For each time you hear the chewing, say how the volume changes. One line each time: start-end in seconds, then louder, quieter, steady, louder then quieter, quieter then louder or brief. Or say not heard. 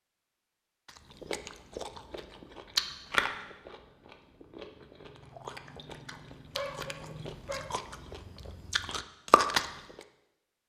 0.8-10.1 quieter then louder.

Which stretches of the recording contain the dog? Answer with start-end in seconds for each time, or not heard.
6.5-7.8.